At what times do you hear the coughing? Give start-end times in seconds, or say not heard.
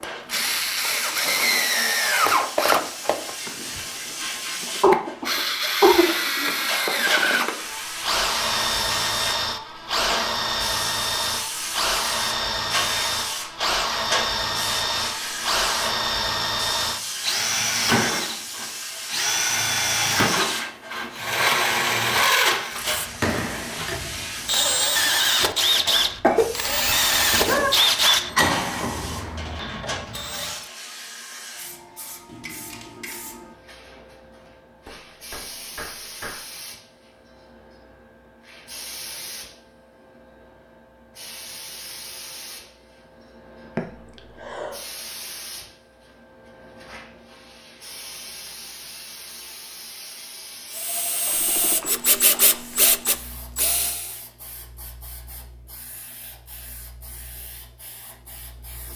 4.8-6.5, 25.9-27.7, 43.8-44.8.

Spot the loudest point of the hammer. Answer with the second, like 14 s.
36 s.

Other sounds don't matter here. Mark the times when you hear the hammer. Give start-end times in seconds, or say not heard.
34.5-36.5.